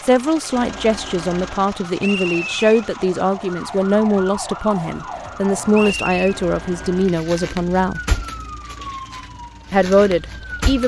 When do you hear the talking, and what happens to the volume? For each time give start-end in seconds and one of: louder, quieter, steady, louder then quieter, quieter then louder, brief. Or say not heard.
0.0-8.0 steady
9.7-10.8 brief.